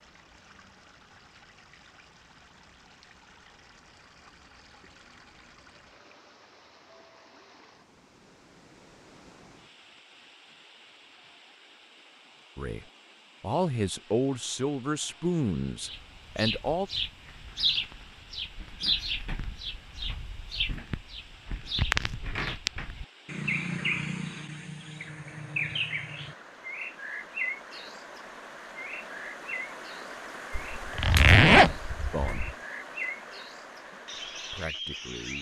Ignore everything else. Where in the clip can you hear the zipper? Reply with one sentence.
The zipper can be heard from 30.6 to 32.5 s.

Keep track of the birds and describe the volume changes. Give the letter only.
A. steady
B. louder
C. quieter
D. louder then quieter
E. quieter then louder
C.